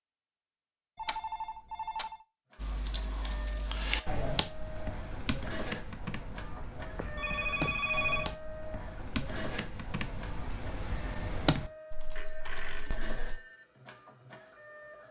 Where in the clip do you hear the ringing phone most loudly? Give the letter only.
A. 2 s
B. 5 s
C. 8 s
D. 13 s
C.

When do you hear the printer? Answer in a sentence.
You can hear the printer from 2.5 to 15.0 s.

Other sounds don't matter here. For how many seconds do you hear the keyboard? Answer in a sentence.
The keyboard can be heard for 11 seconds in total.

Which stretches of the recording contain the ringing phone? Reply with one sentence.
The ringing phone can be heard from 0.9 to 2.1 s, from 7.0 to 8.3 s and from 12.2 to 13.7 s.